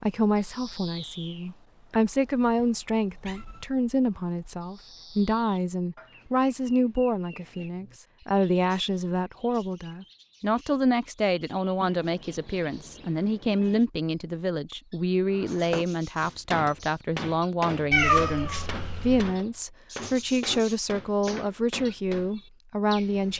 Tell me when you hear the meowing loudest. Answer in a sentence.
The loudest moment of the meowing is at 18 seconds.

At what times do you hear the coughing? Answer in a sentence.
The coughing can't be heard in this clip.